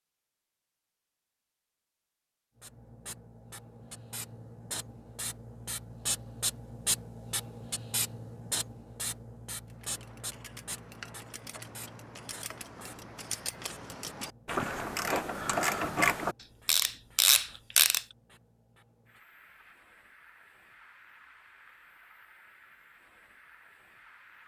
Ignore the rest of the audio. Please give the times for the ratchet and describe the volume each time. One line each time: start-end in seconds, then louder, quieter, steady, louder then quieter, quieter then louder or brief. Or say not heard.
9.7-18.0 louder.